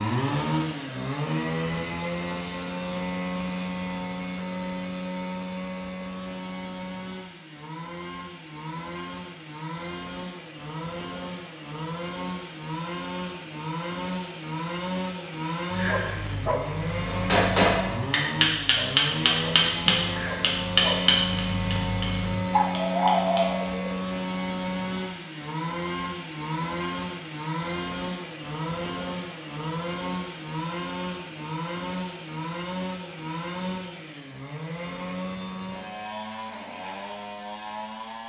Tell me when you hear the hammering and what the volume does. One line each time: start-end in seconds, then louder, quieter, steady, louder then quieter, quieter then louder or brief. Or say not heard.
17.1-23.7 quieter.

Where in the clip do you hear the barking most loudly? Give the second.
23 s.